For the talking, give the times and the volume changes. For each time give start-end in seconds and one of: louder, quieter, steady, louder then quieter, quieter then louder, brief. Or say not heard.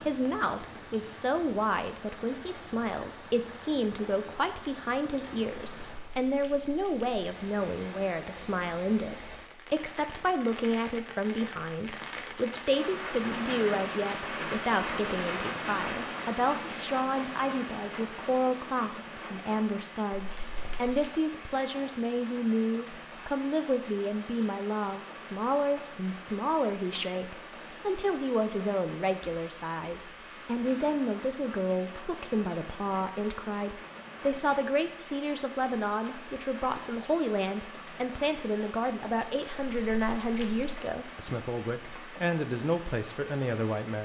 0.0-44.0 steady.